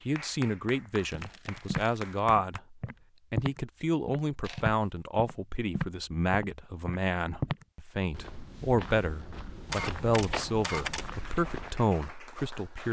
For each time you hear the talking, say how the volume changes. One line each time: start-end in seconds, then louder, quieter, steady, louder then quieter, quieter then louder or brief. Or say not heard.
0.1-12.8 steady.